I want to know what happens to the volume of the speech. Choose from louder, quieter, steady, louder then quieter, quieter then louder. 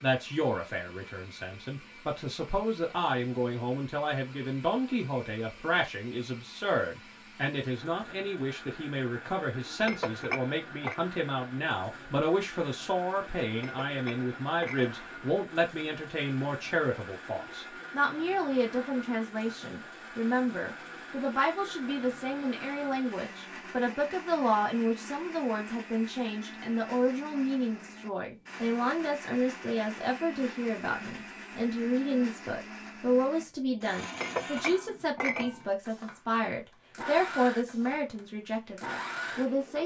steady.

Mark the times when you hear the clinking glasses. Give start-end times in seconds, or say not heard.
9.8-10.9, 13.6-15.1, 34.1-35.6.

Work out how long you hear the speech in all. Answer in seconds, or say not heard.
40 s.